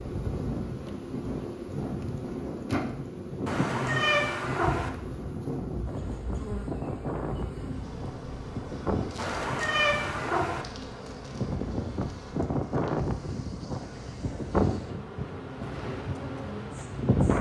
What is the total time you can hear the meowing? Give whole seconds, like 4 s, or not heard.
3 s.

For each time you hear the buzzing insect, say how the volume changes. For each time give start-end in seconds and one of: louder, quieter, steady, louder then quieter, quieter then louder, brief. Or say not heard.
0.0-17.3 quieter.